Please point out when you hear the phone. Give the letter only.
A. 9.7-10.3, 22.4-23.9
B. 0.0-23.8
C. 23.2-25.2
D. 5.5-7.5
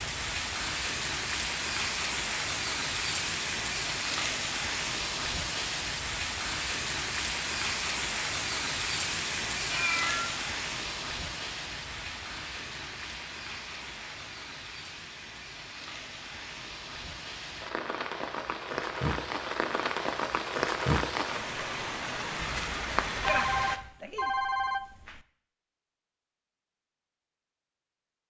C.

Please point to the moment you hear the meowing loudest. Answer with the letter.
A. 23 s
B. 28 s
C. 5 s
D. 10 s
D.